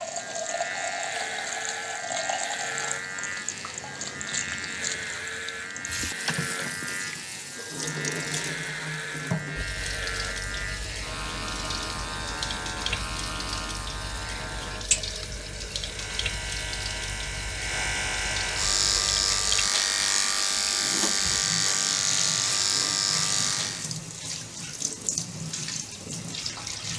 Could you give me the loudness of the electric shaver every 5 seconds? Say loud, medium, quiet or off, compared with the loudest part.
medium, medium, medium, loud, loud, off.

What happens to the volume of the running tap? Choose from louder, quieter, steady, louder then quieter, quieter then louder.
steady.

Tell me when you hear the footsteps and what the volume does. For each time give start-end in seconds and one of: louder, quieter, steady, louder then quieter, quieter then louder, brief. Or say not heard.
not heard.